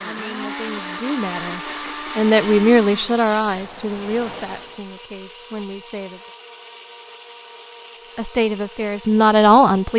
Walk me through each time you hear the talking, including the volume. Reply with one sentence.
The talking can be heard from 0.0 to 6.2 s, getting louder then quieter; and briefly from 8.2 to 9.9 s.